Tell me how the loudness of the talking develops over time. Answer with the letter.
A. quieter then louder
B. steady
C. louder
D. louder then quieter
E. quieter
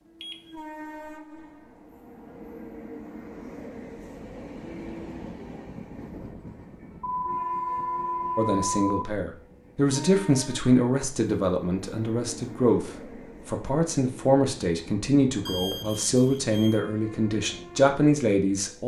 B.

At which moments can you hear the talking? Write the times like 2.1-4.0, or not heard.
8.3-18.8.